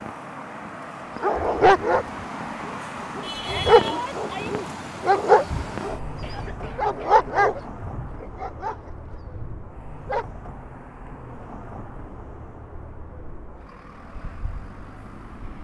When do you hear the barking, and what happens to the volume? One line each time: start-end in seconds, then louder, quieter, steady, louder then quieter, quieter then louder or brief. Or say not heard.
1.2-2.0 brief
2.6-10.2 quieter.